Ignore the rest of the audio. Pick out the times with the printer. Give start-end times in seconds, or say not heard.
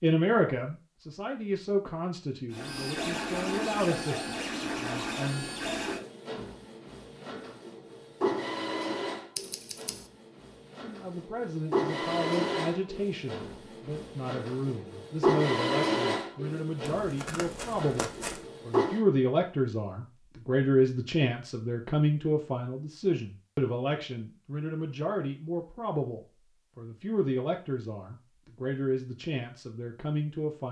2.5-19.0.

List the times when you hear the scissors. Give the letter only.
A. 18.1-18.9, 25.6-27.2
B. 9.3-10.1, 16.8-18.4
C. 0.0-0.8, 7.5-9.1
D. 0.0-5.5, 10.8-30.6
B.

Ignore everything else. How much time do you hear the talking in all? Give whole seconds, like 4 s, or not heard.
25 s.